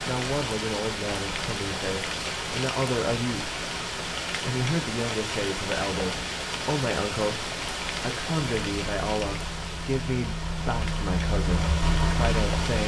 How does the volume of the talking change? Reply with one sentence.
The loudness of the talking stays about the same.